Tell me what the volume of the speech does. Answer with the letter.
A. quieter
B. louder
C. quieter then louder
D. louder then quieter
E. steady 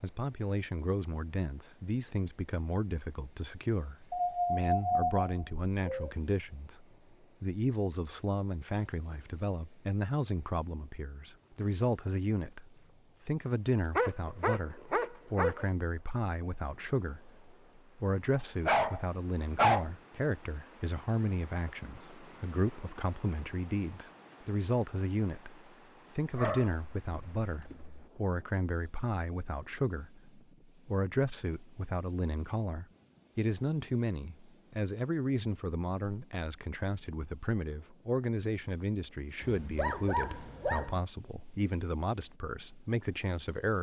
E.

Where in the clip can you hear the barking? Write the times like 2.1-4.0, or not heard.
4.1-6.2, 13.9-15.7, 18.4-19.9, 26.3-28.1, 39.4-41.0.